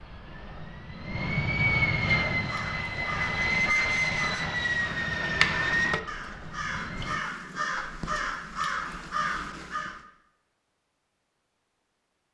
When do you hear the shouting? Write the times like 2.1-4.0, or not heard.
not heard.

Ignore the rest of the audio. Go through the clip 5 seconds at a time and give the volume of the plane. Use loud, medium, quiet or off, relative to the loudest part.
loud, loud, off.